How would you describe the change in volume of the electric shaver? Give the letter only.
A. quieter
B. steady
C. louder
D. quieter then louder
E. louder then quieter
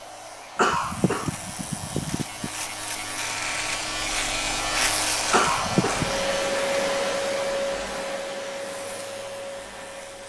E.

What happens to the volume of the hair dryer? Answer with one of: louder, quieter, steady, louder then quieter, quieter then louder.
louder then quieter.